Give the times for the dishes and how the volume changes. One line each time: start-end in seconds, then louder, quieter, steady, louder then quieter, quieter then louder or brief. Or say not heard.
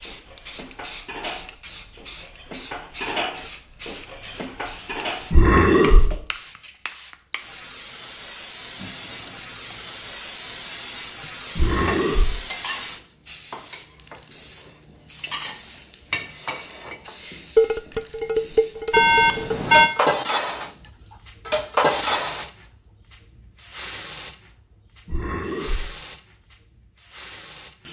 0.0-6.8 louder then quieter
11.8-22.5 louder.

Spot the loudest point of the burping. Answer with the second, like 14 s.
6 s.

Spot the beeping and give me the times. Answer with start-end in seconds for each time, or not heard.
9.8-11.3, 18.9-19.9.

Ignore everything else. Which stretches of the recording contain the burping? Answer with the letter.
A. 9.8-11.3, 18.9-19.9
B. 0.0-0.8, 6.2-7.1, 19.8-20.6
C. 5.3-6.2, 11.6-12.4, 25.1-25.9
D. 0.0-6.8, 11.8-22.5
C.